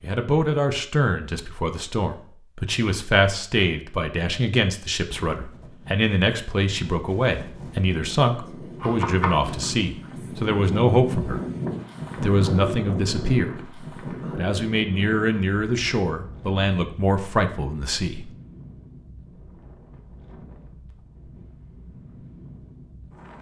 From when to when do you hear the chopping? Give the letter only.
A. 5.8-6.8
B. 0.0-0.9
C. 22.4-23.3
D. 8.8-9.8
D.